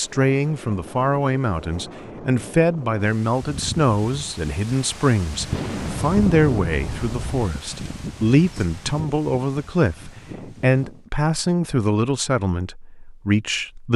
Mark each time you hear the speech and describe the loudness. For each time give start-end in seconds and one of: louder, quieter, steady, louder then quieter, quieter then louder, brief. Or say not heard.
0.0-13.9 steady.